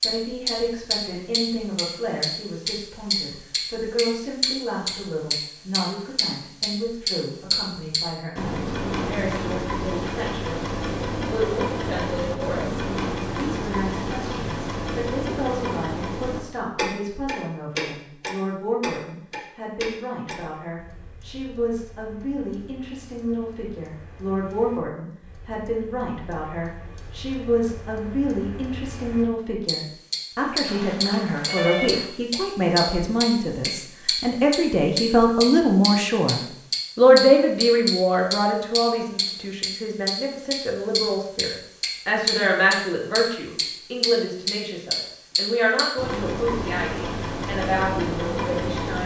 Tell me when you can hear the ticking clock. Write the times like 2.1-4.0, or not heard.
0.0-49.0.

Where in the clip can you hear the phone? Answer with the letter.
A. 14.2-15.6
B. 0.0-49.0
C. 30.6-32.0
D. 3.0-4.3
C.